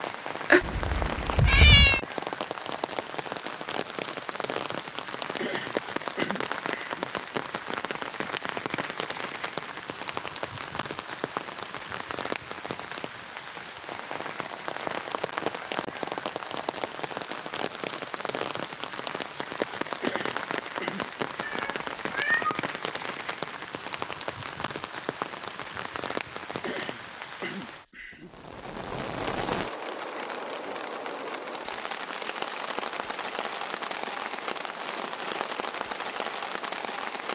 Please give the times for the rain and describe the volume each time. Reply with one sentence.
You can hear the rain from 0.0 to 37.3 s, at a steady volume.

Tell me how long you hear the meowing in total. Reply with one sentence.
You can hear the meowing for 3 seconds altogether.